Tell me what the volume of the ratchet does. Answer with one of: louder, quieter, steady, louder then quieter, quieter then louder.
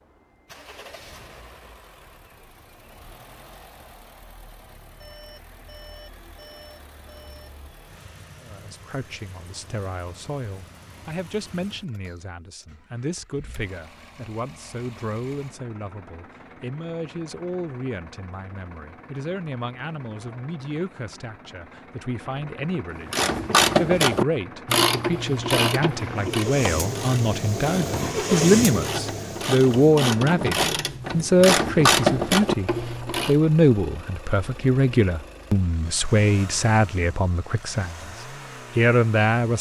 quieter then louder.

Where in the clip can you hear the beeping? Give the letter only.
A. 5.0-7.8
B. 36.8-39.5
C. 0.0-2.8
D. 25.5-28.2
A.